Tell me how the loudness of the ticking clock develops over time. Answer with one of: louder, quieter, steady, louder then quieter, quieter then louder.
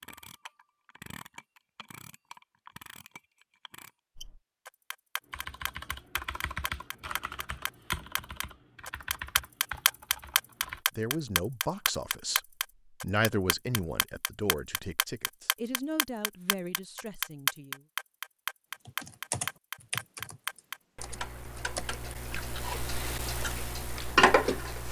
louder.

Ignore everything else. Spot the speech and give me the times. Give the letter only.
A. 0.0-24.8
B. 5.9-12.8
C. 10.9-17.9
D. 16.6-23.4
C.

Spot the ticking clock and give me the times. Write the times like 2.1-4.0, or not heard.
0.0-24.8.